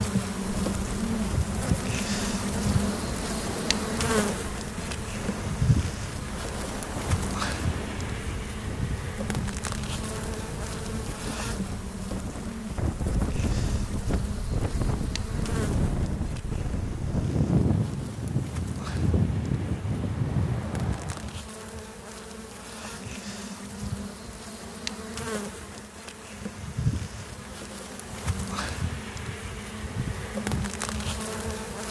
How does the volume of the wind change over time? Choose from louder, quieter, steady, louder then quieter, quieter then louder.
louder.